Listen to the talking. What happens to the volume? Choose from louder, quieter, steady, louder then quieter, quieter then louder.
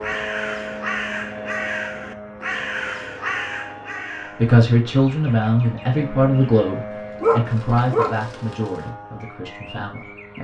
quieter.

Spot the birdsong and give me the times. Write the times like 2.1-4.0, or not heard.
0.0-10.3.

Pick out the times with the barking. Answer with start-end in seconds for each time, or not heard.
7.2-8.7.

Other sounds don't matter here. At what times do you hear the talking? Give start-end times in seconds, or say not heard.
4.2-10.3.